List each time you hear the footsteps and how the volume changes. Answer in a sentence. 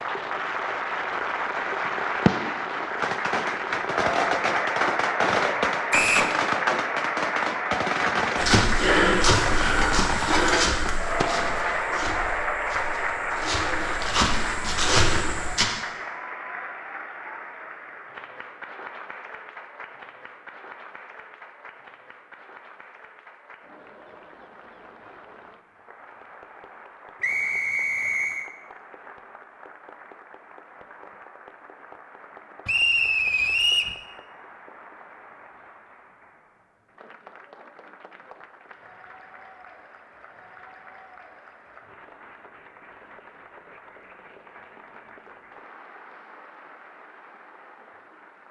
The footsteps can be heard from 8.3 to 15.7 s, getting quieter then louder.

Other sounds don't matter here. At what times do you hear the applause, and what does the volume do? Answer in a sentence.
The applause can be heard from 0.0 to 48.4 s, getting quieter.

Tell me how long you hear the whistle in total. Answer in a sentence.
The whistle can be heard for 3 seconds in total.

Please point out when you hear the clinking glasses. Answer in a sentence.
You can hear the clinking glasses from 9.8 to 10.7 s.